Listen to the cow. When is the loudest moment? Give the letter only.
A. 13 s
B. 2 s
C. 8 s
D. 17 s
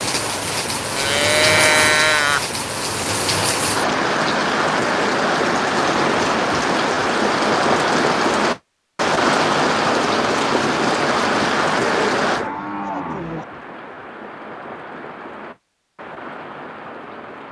B.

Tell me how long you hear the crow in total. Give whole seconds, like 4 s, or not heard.
not heard.